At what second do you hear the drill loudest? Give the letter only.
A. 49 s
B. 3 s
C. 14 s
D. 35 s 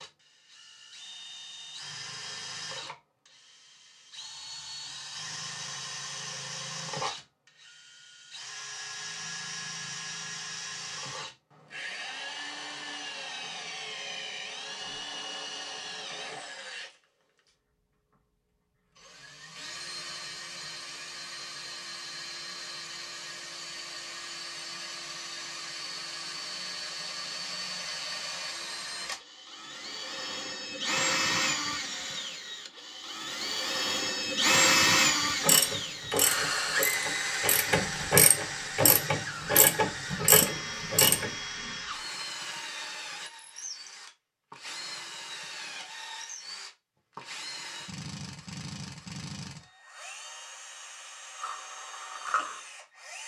D.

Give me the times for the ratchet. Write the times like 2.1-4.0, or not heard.
35.4-41.3.